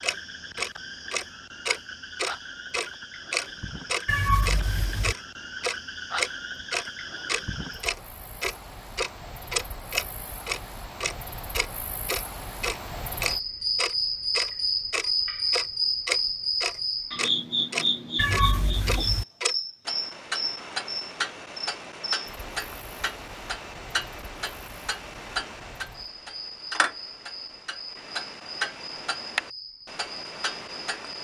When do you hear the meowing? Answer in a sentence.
You can hear the meowing from 4.0 to 5.2 s and from 18.1 to 19.2 s.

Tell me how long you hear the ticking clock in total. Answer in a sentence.
You can hear the ticking clock for 31 seconds altogether.